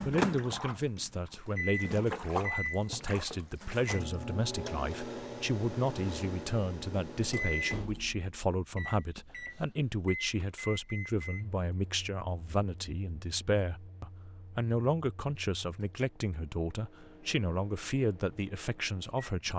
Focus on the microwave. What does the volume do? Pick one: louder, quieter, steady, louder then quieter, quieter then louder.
quieter.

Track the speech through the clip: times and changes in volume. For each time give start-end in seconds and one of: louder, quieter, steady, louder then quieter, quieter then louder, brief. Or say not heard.
0.0-19.5 steady.